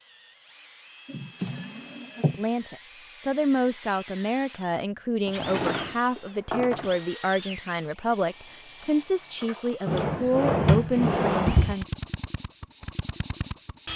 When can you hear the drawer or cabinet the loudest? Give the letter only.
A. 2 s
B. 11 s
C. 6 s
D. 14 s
B.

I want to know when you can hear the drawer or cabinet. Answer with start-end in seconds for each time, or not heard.
1.1-2.4, 5.2-7.0, 9.8-11.8.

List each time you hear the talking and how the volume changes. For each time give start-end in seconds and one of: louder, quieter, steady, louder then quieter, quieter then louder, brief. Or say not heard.
2.4-11.8 steady.